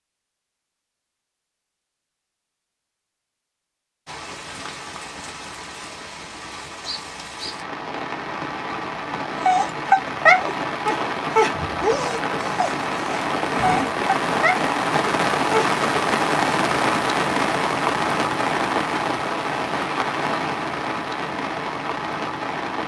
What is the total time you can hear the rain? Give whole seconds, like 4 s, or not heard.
19 s.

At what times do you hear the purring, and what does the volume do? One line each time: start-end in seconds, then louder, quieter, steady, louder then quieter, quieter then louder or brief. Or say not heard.
not heard.